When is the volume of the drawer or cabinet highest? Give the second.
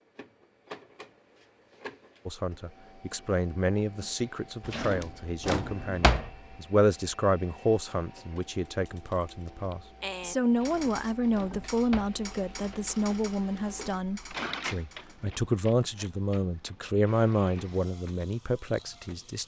6 s.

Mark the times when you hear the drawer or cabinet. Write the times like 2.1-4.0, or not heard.
4.6-6.3, 10.5-12.8.